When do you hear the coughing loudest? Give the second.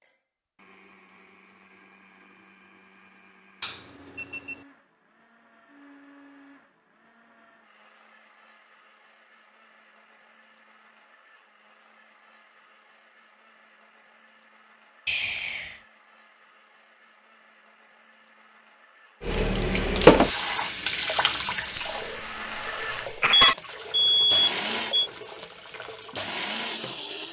23 s.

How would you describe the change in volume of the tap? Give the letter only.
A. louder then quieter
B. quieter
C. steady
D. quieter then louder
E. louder
B.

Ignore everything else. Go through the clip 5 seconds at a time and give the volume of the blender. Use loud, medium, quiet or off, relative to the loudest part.
quiet, quiet, quiet, quiet, loud, loud.